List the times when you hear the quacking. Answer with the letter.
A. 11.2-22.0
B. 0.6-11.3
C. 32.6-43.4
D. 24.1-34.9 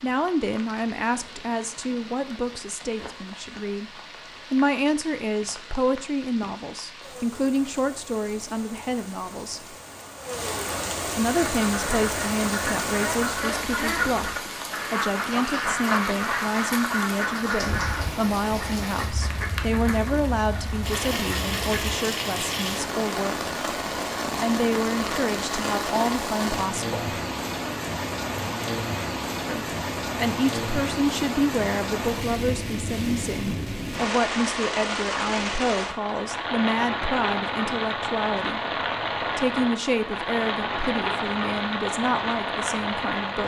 A.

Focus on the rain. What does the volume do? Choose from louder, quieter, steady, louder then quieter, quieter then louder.
louder.